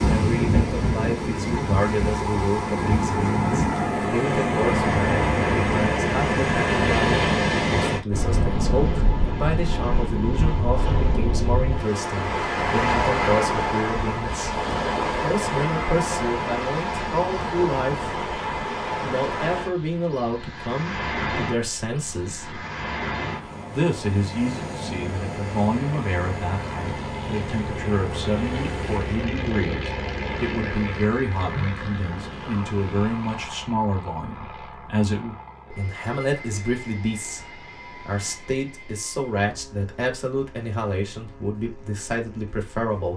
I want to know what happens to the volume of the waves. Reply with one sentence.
The loudness of the waves goes down.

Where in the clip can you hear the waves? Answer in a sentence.
You can hear the waves from 0.0 to 33.5 s.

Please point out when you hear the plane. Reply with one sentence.
The plane can be heard from 22.4 to 43.1 s.